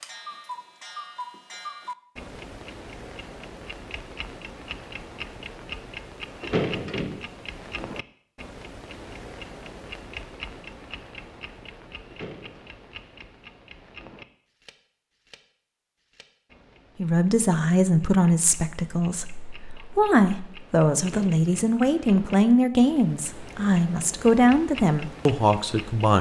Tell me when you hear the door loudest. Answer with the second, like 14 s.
7 s.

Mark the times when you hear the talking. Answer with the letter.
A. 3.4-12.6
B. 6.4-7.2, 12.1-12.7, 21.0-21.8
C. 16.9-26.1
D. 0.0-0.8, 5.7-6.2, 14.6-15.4
C.